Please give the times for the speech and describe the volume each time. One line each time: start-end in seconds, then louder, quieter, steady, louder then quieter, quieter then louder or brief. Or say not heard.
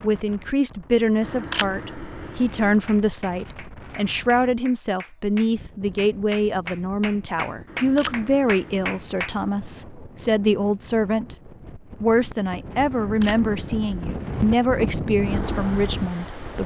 0.0-16.6 steady.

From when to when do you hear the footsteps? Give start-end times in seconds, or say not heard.
not heard.